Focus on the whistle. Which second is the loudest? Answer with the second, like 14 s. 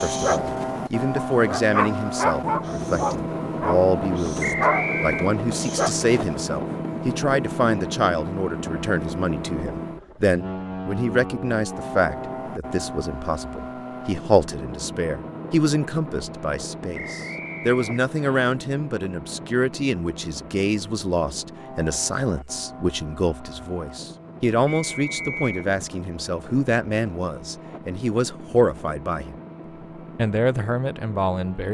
5 s.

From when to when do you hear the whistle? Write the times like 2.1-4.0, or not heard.
4.4-5.3, 16.9-18.4, 24.6-25.6.